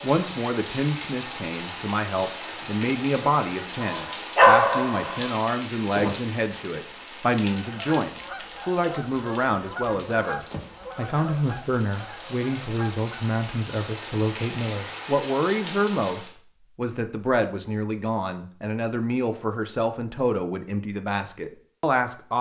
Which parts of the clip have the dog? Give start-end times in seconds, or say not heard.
3.8-5.3.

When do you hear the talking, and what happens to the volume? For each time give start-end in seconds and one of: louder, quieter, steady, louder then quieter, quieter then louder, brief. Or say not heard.
0.0-22.3 steady.